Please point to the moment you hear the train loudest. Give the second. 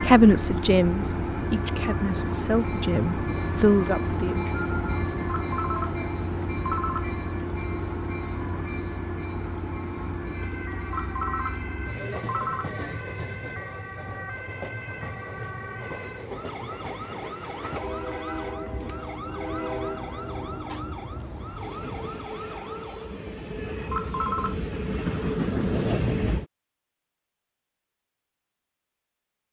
26 s.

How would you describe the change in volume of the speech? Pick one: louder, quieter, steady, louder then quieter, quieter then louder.
quieter then louder.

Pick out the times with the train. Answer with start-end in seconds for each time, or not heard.
0.0-26.4.